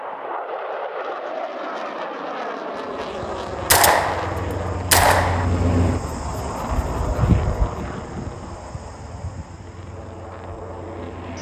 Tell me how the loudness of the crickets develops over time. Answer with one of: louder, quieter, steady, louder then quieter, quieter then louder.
louder then quieter.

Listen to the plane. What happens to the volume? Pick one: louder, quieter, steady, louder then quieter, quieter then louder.
quieter.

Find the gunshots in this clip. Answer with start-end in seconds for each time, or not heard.
3.7-5.5.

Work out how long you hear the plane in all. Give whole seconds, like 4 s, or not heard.
11 s.